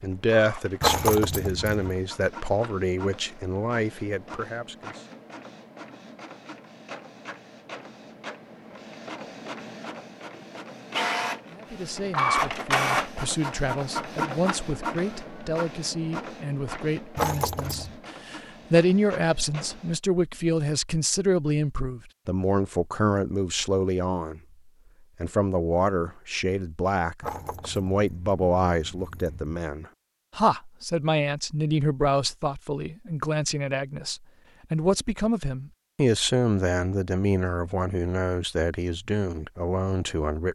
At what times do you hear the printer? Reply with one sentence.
The printer can be heard from 0.0 to 20.0 s.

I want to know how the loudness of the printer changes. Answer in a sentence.
The loudness of the printer goes up, then down.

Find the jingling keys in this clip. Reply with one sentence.
You can hear the jingling keys from 0.8 to 1.9 s, from 17.1 to 17.9 s and from 27.2 to 29.6 s.